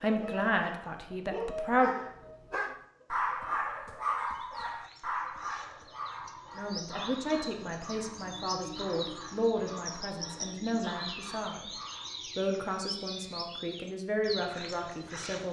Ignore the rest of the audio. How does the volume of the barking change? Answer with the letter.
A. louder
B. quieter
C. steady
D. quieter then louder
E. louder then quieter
B.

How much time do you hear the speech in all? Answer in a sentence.
The speech can be heard for 10 seconds in total.